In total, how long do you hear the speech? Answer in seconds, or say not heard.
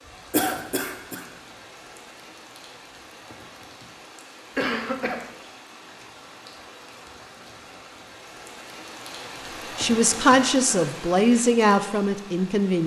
3 s.